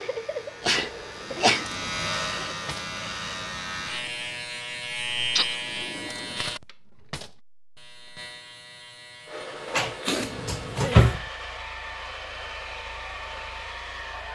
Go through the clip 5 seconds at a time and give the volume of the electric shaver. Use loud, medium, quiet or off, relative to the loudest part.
loud, loud, quiet.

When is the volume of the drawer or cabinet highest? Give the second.
11 s.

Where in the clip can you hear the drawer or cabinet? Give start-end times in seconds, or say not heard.
1.1-2.9, 5.6-7.3, 9.7-11.2.